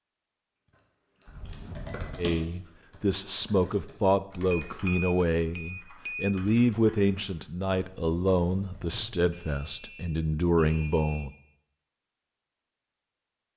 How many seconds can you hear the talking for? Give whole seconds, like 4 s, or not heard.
9 s.